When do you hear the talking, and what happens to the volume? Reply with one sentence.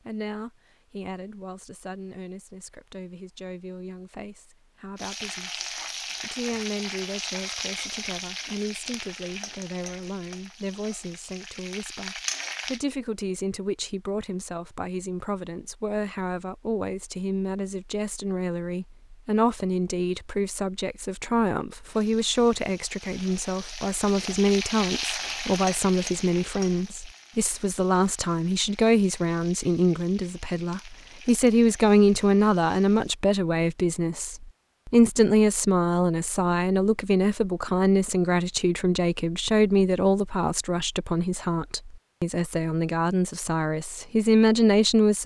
The talking can be heard from 0.0 to 45.2 s, getting louder.